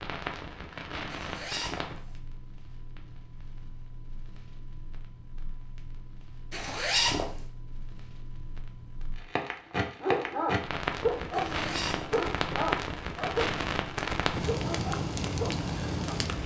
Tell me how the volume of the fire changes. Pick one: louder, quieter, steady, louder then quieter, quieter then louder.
quieter then louder.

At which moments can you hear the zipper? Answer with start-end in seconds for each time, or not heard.
1.1-2.2, 6.5-7.5, 11.5-12.2.